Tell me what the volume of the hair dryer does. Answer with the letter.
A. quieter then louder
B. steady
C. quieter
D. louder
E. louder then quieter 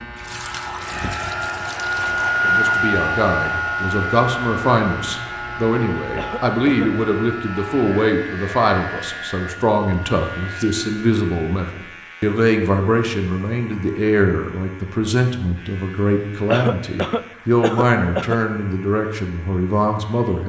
C.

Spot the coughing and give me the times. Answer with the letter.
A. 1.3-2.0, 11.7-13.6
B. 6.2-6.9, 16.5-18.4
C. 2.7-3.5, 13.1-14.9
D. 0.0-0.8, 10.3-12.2
B.